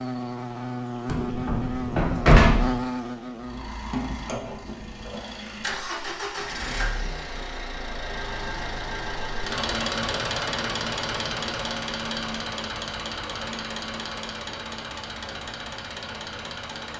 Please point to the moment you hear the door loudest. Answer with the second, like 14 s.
2 s.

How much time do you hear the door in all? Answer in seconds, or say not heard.
2 s.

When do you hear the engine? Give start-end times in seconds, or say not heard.
3.4-16.9.